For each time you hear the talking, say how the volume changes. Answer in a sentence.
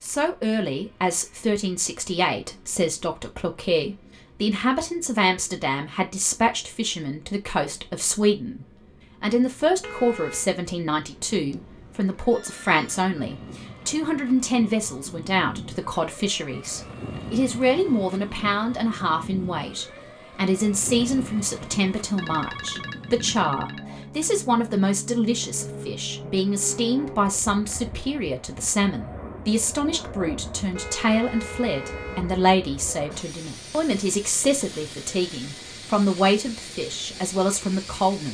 You can hear the talking from 0.0 to 38.2 s, at a steady volume.